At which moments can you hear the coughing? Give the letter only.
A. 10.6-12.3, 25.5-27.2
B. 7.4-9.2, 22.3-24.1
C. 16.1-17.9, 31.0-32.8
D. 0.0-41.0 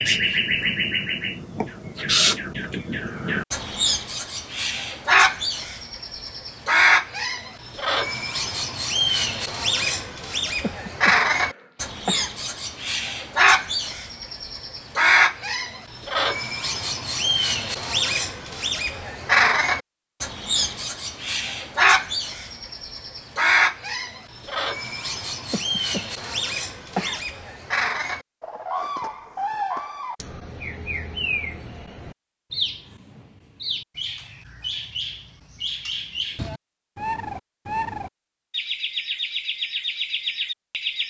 A.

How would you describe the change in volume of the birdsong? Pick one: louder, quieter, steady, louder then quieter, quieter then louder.
quieter.